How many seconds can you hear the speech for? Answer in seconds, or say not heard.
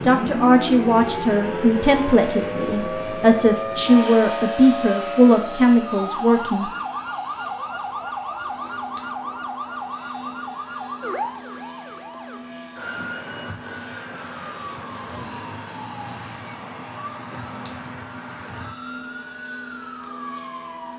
7 s.